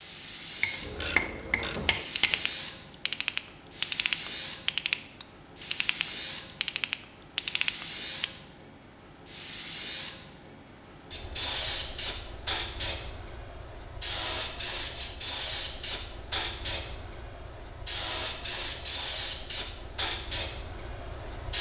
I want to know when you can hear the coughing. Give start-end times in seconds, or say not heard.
not heard.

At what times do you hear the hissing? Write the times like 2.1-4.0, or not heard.
0.0-21.5.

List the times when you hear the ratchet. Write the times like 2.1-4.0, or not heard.
0.8-8.3.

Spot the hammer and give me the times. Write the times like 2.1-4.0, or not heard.
0.6-2.4.